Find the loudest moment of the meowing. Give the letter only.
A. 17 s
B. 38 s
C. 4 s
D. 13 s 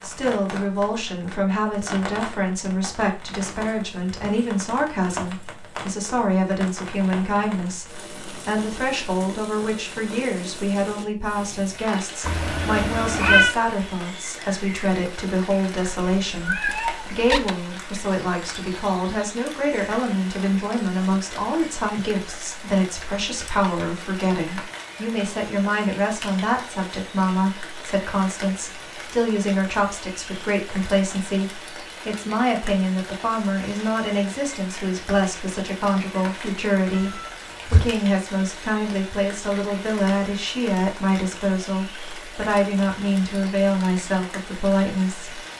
D.